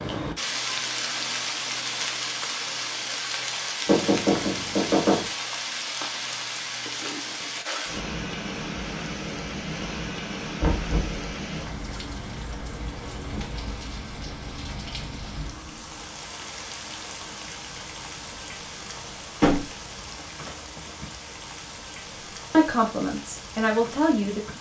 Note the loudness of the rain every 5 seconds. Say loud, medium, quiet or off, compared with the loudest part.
loud, loud, medium, medium, medium.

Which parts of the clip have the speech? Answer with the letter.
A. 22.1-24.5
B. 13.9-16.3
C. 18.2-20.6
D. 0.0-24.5
A.